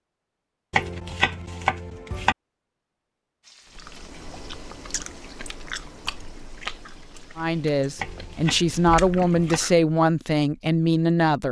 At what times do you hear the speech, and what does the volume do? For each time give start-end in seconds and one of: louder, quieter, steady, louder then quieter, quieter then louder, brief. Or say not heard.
7.3-11.4 louder.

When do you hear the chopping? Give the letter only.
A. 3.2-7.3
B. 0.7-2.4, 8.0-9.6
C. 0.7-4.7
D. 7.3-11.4
B.